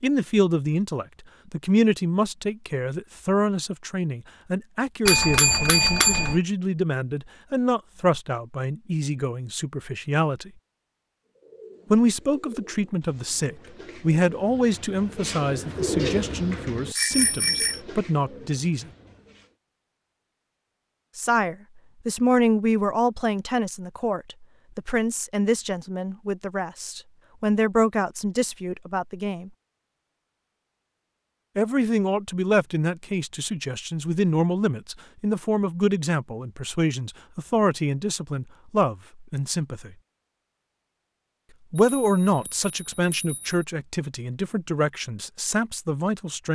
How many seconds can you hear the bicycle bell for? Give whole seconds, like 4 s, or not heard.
4 s.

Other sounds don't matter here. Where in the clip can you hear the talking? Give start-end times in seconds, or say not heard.
0.0-10.5, 11.9-18.9, 21.1-29.5, 31.6-40.0, 41.7-46.5.